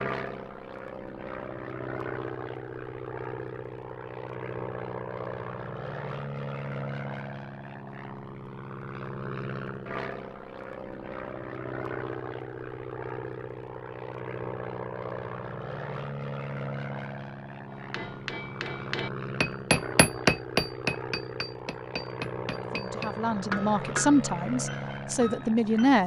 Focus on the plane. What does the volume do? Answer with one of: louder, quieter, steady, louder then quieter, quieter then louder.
steady.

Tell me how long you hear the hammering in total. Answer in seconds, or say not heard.
8 s.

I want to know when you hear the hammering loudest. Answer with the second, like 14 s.
20 s.